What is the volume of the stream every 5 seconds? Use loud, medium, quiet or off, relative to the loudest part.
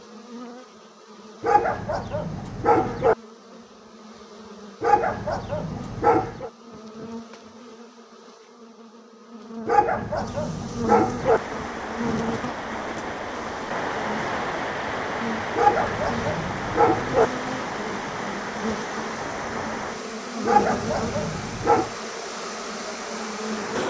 off, off, loud, loud, medium.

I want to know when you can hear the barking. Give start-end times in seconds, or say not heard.
1.4-3.1, 4.8-6.5, 9.7-11.4, 15.6-17.3, 20.4-21.9.